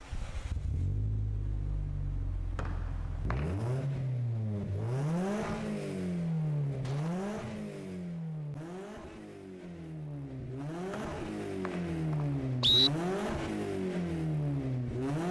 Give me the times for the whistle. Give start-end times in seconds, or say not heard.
2.5-3.5, 10.9-12.9.